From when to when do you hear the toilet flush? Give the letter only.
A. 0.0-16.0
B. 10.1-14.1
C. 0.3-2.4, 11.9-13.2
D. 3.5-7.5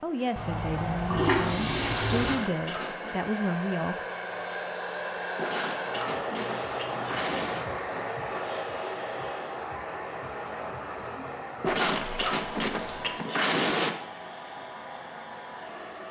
C.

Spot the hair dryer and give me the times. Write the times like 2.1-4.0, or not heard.
0.0-16.0.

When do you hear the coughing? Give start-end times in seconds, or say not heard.
2.1-3.1, 5.3-7.7, 11.6-14.0.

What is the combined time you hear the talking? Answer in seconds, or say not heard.
4 s.